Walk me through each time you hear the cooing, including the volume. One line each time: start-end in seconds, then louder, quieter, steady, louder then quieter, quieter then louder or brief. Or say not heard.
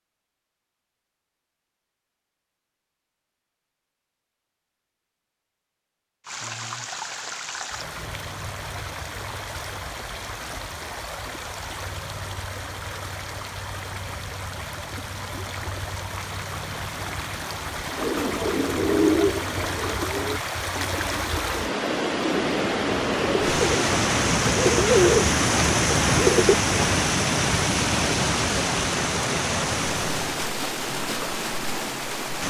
17.9-26.8 quieter then louder.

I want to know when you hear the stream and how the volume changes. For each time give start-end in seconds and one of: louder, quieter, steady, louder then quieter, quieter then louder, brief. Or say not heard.
6.2-32.4 louder.